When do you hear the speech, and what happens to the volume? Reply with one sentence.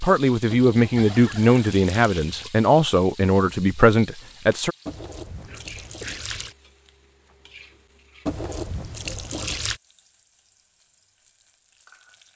You can hear the speech from 0.0 to 4.8 s, at a steady volume.